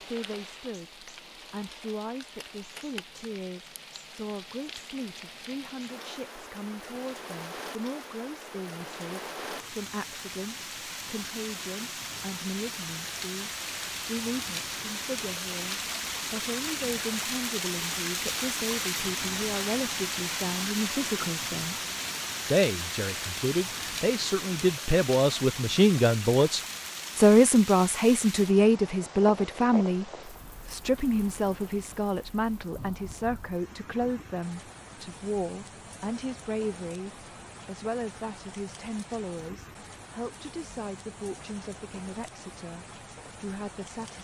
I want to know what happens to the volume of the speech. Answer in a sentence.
The volume of the speech goes up, then down.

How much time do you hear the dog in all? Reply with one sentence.
The dog can't be heard in this clip.